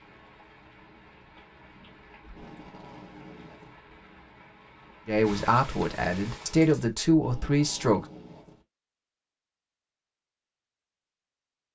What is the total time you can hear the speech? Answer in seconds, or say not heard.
3 s.